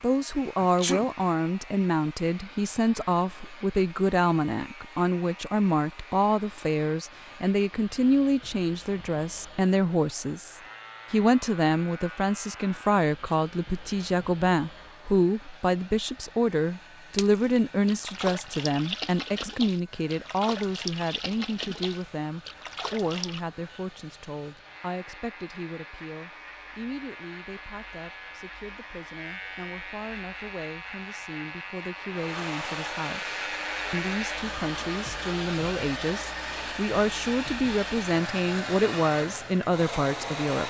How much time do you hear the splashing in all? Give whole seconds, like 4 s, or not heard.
6 s.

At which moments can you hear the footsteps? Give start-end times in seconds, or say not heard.
not heard.